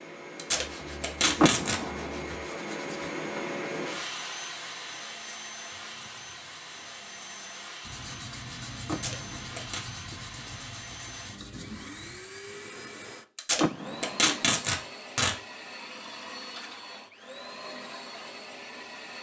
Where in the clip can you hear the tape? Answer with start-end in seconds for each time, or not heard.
0.3-1.8, 8.9-9.8, 13.3-15.3.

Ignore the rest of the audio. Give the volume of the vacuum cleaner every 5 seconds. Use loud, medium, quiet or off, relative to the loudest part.
loud, medium, medium, medium.